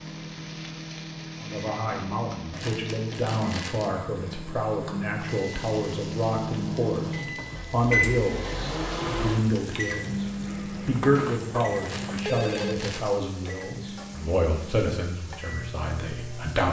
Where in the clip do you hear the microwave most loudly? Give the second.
8 s.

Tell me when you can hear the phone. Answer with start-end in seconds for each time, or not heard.
10.8-12.8.